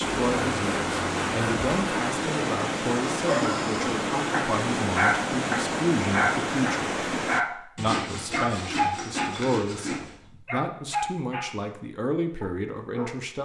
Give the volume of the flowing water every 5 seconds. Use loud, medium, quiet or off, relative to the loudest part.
loud, loud, off.